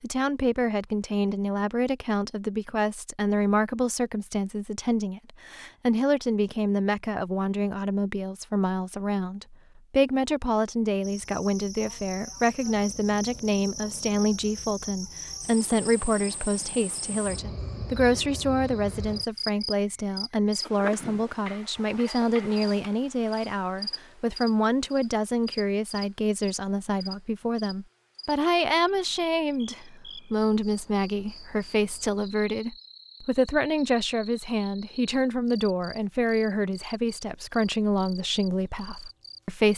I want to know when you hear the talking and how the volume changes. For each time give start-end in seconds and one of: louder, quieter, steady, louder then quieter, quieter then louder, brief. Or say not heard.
0.0-39.7 steady.